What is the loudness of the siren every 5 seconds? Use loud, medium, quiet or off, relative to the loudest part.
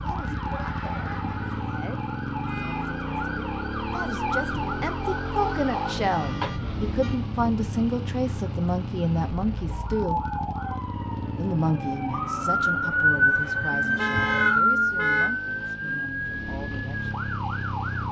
medium, medium, loud, medium.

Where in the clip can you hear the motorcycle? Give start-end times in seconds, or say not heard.
0.0-18.0.